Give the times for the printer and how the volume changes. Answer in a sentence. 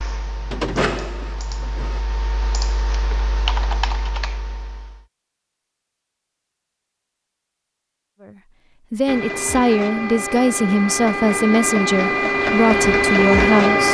You can hear the printer briefly from 0.1 to 2.0 s; and from 9.1 to 13.8 s, getting louder.